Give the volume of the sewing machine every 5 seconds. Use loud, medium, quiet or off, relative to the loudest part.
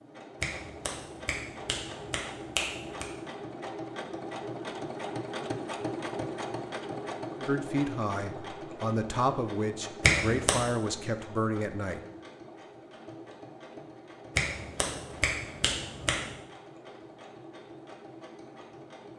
loud, loud, medium, medium.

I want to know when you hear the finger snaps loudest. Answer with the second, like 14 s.
10 s.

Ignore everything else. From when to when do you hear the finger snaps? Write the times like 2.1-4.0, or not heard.
0.4-3.0, 10.0-10.6, 14.3-16.4.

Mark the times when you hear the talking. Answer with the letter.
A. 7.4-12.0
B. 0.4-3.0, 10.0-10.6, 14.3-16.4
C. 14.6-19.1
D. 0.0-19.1
A.